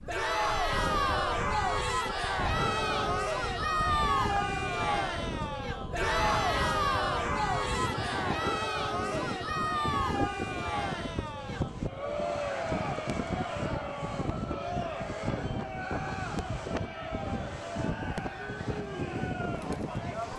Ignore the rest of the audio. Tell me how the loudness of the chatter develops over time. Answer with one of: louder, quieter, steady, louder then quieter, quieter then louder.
quieter.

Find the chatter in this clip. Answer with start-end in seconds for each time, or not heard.
0.1-20.3.